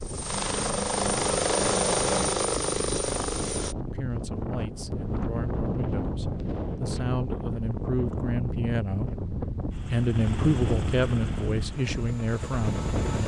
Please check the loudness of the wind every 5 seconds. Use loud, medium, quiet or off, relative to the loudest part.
medium, loud, loud.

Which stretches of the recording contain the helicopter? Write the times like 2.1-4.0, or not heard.
0.0-3.8, 9.7-13.2.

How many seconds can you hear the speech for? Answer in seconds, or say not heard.
9 s.